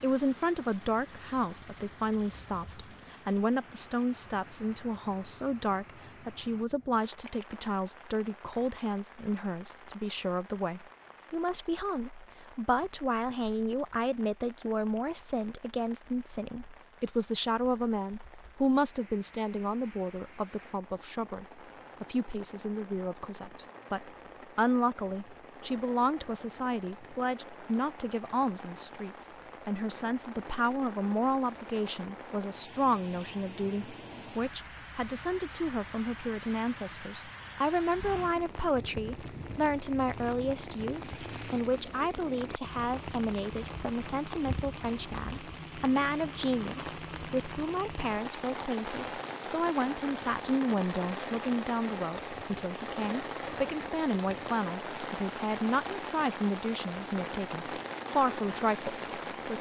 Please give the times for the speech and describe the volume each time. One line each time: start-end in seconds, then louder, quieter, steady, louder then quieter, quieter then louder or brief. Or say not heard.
0.0-59.5 steady.